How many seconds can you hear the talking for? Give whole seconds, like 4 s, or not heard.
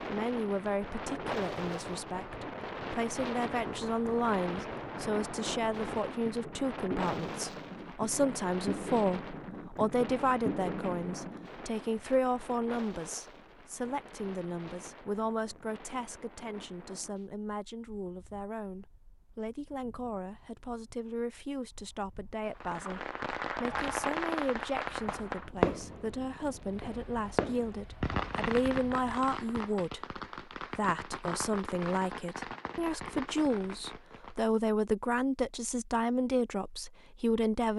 38 s.